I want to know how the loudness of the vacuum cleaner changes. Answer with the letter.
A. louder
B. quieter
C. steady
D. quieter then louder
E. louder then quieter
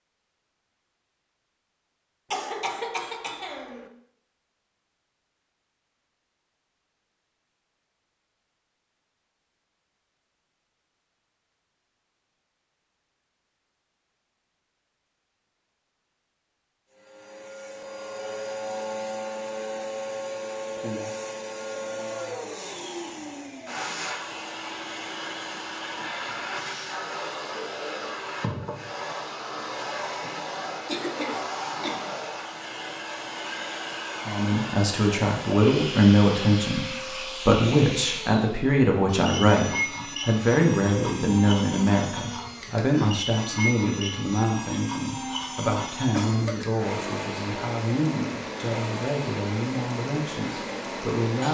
C.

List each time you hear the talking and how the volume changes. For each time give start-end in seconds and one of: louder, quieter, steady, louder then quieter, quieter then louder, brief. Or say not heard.
34.2-51.4 quieter.